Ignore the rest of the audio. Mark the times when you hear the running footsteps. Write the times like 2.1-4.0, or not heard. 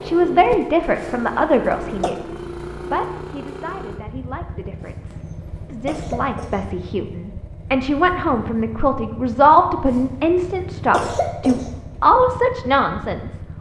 not heard.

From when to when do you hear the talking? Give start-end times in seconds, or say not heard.
0.0-13.4.